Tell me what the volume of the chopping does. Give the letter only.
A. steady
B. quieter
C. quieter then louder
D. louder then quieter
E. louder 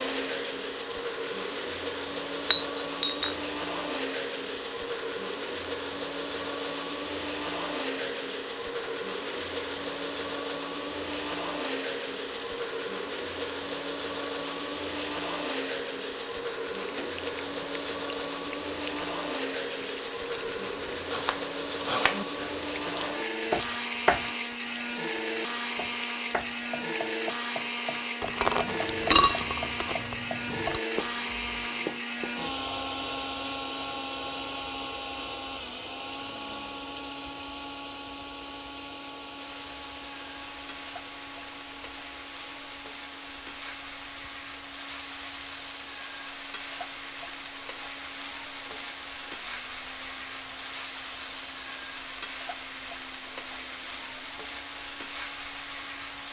B.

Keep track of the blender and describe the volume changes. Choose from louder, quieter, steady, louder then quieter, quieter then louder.
quieter.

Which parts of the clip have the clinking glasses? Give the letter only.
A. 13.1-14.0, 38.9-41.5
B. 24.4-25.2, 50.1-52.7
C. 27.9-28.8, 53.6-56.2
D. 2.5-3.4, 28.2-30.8
D.